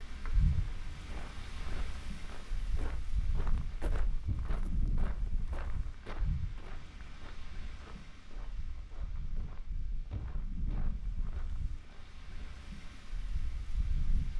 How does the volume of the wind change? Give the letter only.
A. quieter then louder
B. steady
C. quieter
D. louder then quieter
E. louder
C.